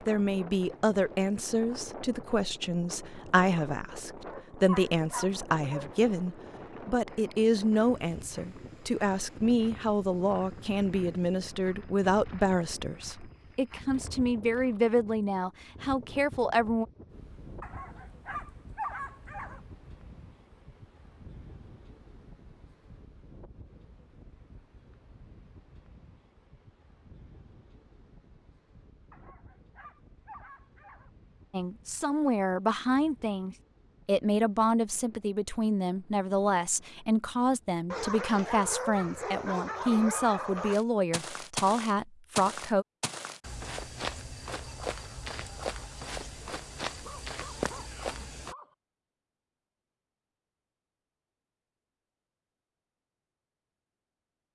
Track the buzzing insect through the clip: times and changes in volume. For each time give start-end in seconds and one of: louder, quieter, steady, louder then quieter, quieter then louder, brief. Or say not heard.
not heard.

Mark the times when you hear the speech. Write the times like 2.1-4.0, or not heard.
0.1-16.9, 31.5-42.9.